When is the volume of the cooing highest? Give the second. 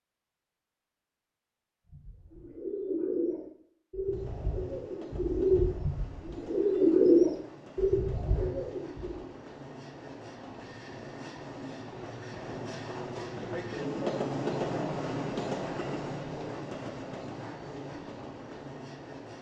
7 s.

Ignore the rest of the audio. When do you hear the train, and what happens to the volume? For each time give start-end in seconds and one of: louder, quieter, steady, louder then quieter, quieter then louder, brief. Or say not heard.
4.0-19.3 louder then quieter.